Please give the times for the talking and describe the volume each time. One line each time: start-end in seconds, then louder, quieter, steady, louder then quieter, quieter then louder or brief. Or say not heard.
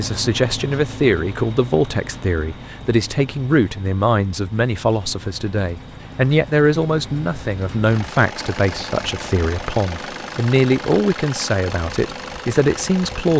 0.0-13.3 steady.